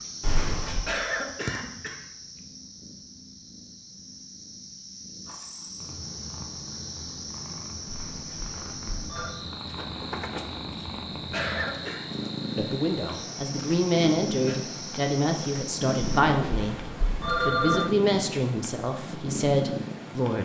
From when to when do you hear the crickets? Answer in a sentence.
You can hear the crickets from 0.0 to 16.2 s.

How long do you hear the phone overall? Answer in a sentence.
The phone can be heard for 4 seconds in total.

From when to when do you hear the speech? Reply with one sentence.
The speech can be heard from 12.6 to 16.8 s and from 17.4 to 20.3 s.